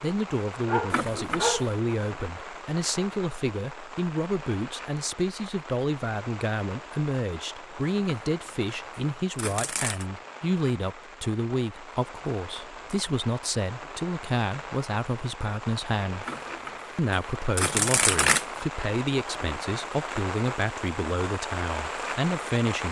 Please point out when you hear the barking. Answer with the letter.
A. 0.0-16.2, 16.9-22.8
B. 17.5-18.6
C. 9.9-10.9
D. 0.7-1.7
D.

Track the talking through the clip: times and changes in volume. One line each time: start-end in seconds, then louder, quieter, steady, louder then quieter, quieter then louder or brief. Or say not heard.
0.0-16.2 steady
16.9-22.8 steady.